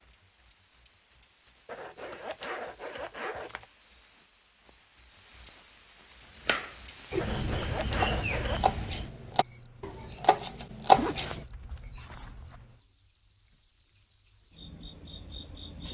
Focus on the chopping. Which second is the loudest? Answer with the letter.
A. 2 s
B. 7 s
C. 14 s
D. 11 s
D.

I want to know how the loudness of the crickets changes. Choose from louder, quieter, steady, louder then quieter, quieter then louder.
louder then quieter.